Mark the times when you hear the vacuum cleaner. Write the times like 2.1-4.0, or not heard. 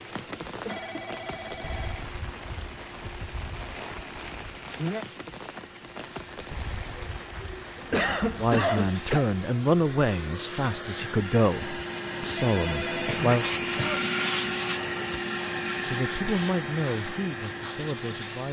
0.0-18.4.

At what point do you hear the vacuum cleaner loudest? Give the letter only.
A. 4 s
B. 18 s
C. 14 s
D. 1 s
C.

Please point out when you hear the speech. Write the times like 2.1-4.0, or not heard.
8.3-13.4, 15.8-18.4.